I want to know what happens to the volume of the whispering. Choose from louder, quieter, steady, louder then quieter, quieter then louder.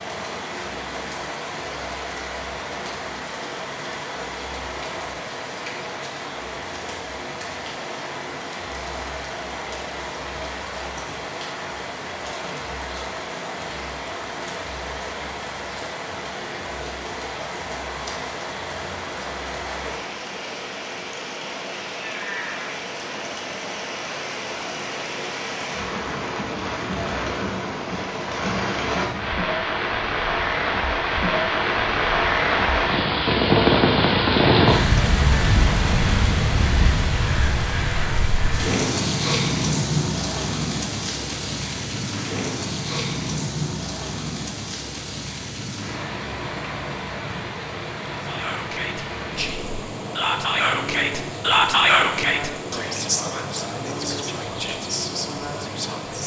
louder then quieter.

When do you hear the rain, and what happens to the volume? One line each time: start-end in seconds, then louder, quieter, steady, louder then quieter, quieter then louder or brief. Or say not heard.
0.0-56.2 louder then quieter.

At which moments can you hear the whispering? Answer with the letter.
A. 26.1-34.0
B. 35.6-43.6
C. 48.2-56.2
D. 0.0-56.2
C.